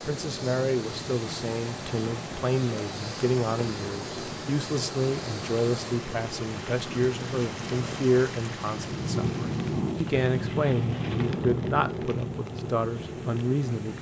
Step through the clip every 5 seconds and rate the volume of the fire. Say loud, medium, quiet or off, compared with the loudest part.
medium, loud, loud.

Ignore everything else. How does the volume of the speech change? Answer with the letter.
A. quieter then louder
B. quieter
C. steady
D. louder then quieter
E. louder
C.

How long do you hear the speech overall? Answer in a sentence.
The speech can be heard for 14 seconds in total.